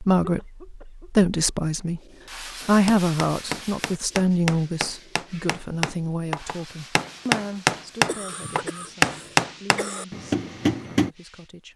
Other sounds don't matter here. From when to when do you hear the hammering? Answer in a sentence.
You can hear the hammering from 2.6 to 11.1 s.